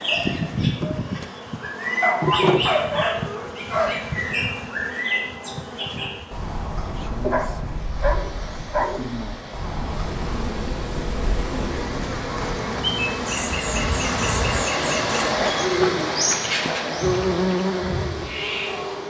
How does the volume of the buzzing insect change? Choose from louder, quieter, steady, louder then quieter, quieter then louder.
quieter then louder.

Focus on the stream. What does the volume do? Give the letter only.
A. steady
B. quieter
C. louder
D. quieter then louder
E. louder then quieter
E.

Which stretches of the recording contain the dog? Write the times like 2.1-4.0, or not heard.
2.0-4.0, 7.2-9.1, 15.2-16.9.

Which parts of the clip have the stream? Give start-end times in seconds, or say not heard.
7.8-19.0.